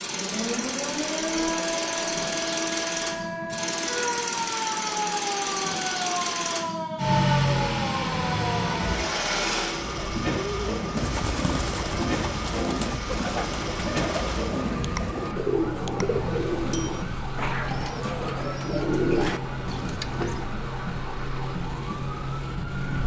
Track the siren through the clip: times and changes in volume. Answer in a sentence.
You can hear the siren from 0.0 to 23.0 s, at a steady volume.